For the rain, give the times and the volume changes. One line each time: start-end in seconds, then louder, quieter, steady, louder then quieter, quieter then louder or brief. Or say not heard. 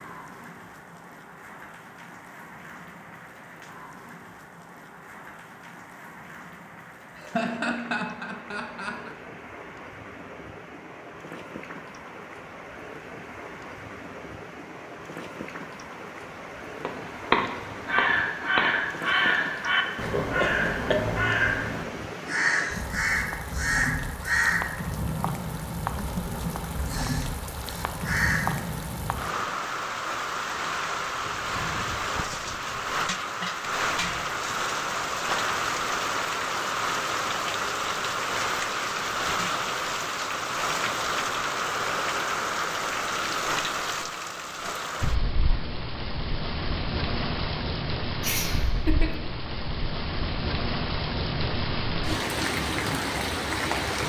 0.0-54.0 louder.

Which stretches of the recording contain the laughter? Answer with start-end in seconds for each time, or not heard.
7.2-9.2, 20.0-21.0, 48.2-49.1.